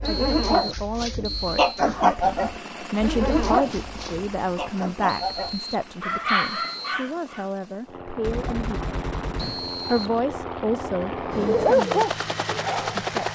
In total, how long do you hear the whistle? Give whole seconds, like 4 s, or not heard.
5 s.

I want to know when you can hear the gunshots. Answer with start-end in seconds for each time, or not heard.
8.2-10.2.